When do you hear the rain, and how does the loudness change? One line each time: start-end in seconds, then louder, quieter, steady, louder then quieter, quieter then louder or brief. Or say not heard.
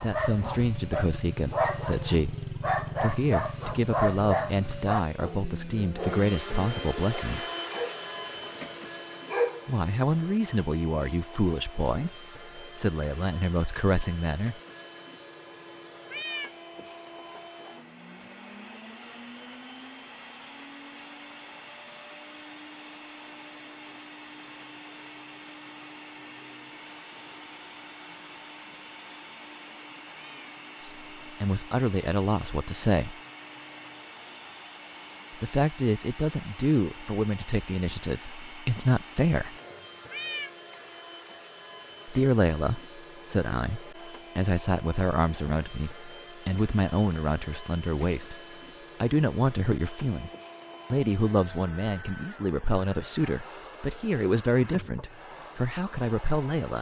not heard.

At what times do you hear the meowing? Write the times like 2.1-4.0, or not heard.
16.1-16.6, 30.1-30.6, 40.1-40.5.